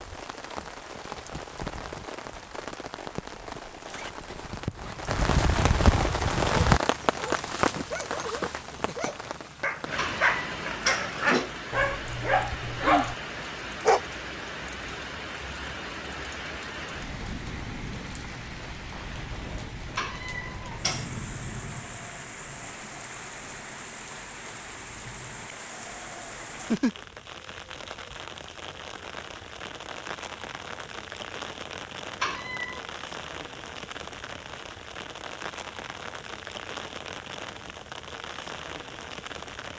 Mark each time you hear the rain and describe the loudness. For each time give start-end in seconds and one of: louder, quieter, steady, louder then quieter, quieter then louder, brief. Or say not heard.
0.0-39.7 quieter.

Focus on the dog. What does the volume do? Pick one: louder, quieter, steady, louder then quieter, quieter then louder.
louder.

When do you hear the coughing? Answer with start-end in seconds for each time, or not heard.
not heard.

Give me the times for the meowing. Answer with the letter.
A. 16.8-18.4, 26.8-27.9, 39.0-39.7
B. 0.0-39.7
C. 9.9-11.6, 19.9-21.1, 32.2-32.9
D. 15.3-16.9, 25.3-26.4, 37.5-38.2
C.